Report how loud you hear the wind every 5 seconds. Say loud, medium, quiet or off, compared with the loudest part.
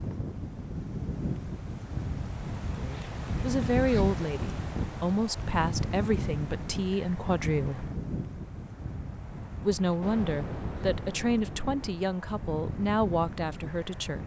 loud, loud, medium.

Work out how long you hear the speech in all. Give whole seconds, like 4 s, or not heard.
10 s.